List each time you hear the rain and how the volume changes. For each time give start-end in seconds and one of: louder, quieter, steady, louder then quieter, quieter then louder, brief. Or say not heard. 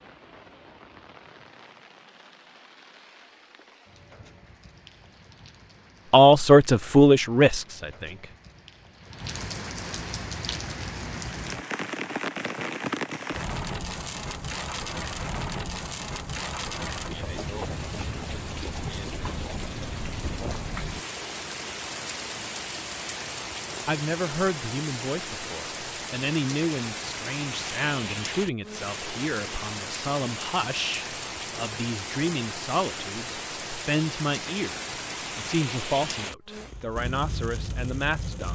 0.0-38.5 louder.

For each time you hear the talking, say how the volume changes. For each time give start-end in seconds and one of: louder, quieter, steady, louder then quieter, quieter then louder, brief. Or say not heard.
6.1-8.3 brief
23.9-38.5 steady.